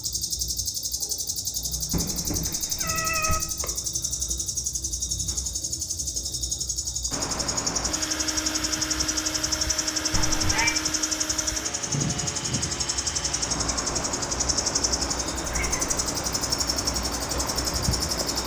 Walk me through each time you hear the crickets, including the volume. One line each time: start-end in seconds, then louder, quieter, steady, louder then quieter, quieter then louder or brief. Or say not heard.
0.0-18.4 steady.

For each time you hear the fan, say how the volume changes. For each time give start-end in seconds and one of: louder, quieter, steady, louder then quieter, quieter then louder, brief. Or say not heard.
7.1-18.4 steady.